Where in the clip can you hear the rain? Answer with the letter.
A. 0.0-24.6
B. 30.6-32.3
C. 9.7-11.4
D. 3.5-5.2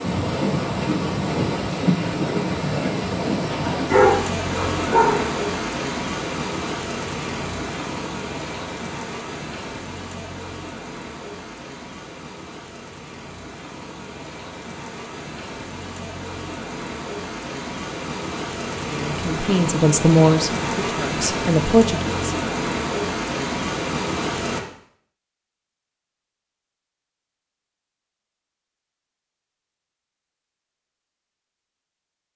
A.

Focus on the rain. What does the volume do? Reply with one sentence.
The volume of the rain goes down, then up.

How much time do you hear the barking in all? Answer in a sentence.
You can hear the barking for 2 seconds altogether.